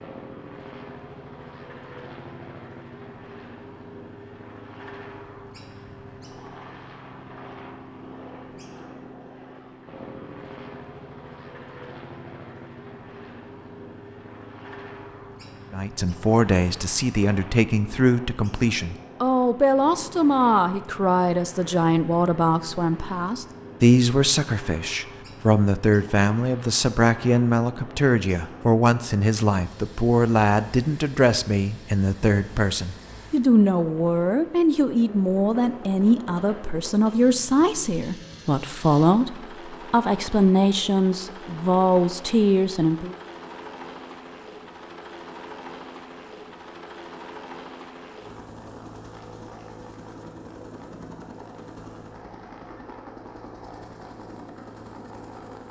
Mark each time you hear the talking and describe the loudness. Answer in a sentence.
The talking can be heard from 15.7 to 43.1 s, at a steady volume.